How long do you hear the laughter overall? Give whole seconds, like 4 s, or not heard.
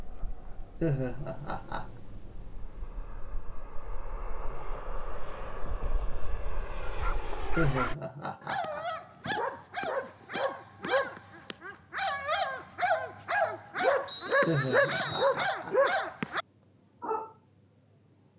4 s.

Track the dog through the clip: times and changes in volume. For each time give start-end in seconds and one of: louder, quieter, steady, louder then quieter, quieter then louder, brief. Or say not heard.
6.8-17.3 louder.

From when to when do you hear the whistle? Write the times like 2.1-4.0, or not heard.
14.1-15.3.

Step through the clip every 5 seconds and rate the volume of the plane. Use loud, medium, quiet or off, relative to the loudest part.
medium, loud, off, off.